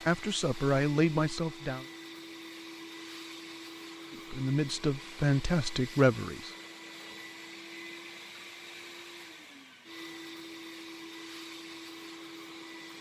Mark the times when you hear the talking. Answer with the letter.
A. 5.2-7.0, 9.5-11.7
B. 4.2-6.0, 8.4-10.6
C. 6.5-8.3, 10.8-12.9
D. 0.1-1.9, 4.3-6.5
D.